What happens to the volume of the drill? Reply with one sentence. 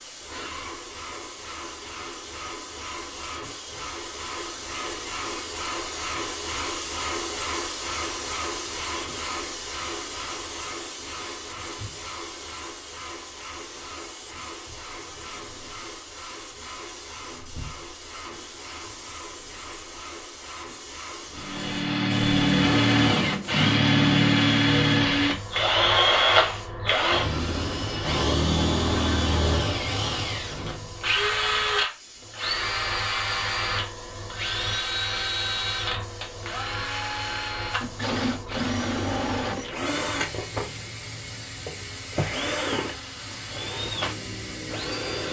The loudness of the drill goes down.